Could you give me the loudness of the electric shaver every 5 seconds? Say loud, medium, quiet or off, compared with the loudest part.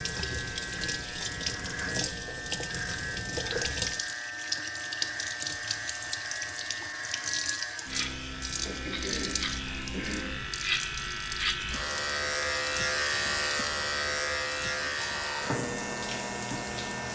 medium, medium, loud, loud.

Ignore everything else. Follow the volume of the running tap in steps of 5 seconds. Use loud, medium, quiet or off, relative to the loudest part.
loud, loud, medium, medium.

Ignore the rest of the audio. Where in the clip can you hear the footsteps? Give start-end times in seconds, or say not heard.
not heard.